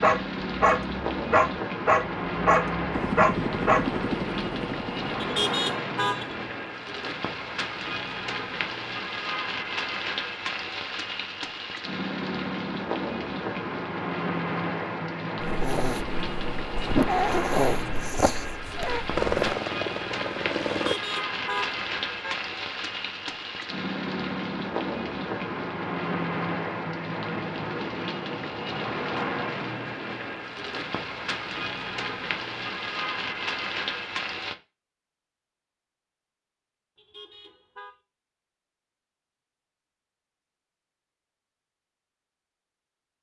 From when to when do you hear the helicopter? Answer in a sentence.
You can hear the helicopter from 2.9 to 5.3 s and from 19.1 to 20.9 s.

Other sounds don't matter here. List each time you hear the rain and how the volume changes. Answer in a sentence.
You can hear the rain from 0.0 to 34.5 s, at a steady volume.